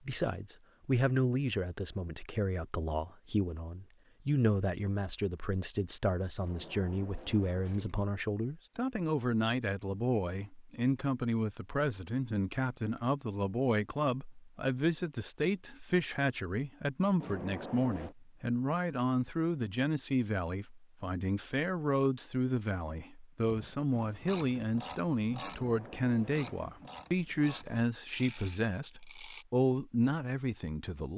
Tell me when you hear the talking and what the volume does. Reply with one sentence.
The talking can be heard from 0.1 to 31.1 s, at a steady volume.